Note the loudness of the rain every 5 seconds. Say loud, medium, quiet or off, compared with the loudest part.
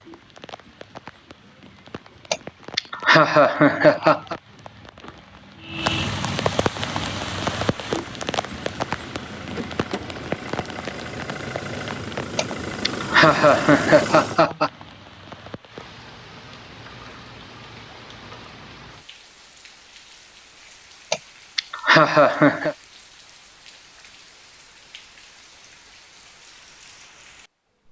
quiet, loud, medium, quiet, quiet, quiet.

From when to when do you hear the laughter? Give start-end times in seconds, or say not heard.
2.3-4.3, 12.3-14.7, 21.1-22.8.